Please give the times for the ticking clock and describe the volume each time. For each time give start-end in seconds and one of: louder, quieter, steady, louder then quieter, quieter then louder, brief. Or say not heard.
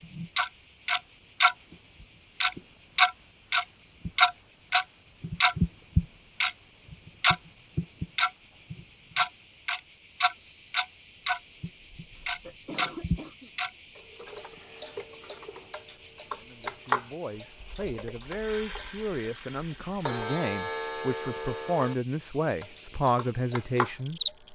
0.0-1.6 brief
2.4-21.9 quieter
22.6-24.4 brief.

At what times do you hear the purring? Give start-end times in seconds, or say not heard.
not heard.